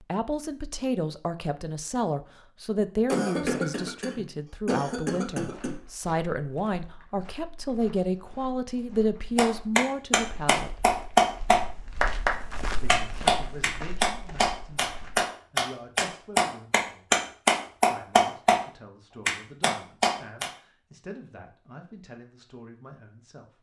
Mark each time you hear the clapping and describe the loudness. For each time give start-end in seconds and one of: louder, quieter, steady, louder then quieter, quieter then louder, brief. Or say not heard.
9.3-18.6 steady
19.2-20.5 brief.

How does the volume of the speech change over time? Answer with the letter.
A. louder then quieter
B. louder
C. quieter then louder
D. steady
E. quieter
E.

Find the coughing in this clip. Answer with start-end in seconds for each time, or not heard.
3.0-5.8.